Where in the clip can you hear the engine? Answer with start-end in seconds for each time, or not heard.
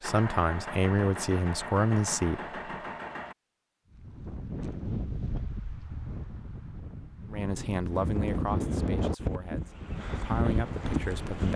0.0-3.4.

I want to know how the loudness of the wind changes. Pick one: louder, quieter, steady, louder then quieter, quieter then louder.
quieter then louder.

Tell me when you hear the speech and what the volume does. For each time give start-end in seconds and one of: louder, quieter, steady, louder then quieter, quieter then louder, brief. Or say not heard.
0.0-2.5 brief
7.3-11.5 quieter then louder.